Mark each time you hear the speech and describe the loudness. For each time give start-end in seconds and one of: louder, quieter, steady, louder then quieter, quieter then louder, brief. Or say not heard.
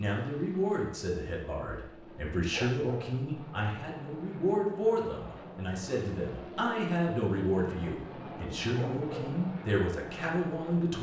0.0-10.9 steady.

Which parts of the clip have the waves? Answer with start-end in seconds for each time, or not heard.
not heard.